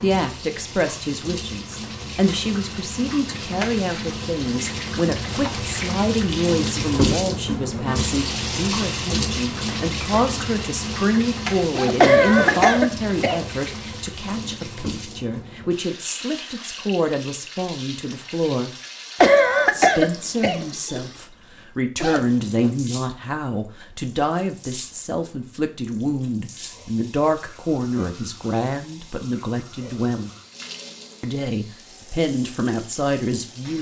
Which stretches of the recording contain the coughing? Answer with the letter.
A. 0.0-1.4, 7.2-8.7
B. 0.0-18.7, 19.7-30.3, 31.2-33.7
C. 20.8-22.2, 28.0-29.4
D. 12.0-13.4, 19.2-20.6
D.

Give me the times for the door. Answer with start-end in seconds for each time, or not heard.
not heard.